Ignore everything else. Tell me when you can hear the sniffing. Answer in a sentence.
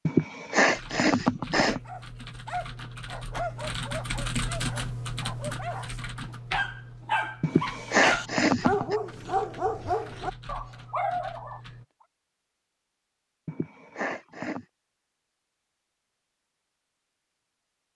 The sniffing can be heard from 0.1 to 1.8 s, from 7.4 to 8.9 s and from 13.4 to 14.7 s.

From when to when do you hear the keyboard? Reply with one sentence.
You can hear the keyboard from 0.7 to 11.8 s.